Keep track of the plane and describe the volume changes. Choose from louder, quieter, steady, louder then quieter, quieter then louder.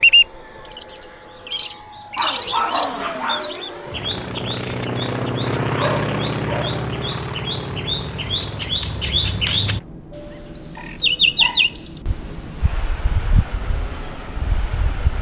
louder then quieter.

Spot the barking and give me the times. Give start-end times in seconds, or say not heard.
2.1-3.5, 5.8-6.8, 10.8-11.8.